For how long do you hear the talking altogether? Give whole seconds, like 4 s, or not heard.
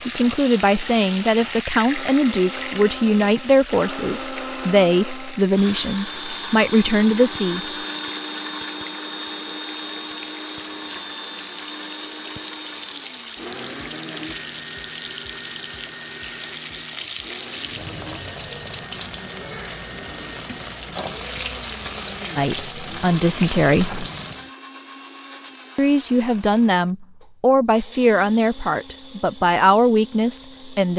14 s.